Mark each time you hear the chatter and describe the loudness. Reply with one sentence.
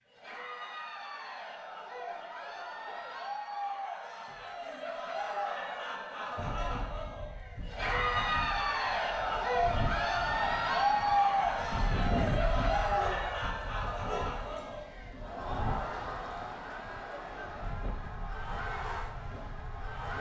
The chatter can be heard from 0.1 to 20.1 s, getting louder then quieter.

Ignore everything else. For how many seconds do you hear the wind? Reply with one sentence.
You can hear the wind for 14 seconds altogether.